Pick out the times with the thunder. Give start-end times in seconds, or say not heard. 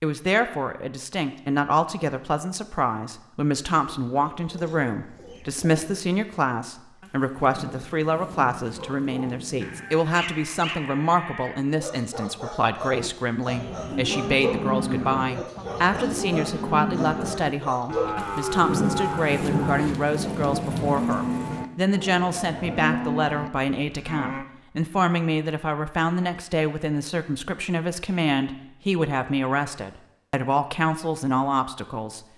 7.0-10.1, 18.1-21.6.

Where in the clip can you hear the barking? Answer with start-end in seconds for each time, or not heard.
8.8-18.2.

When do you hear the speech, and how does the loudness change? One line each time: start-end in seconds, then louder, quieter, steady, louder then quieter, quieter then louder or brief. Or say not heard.
0.0-32.2 steady.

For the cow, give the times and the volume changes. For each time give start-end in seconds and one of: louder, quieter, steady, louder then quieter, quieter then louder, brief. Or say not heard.
12.8-24.4 steady.